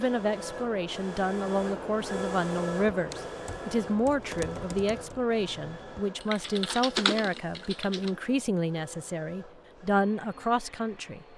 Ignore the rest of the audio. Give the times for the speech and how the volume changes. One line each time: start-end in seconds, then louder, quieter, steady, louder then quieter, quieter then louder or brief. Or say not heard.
0.0-11.2 steady.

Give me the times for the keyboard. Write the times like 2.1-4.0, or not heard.
2.9-8.2.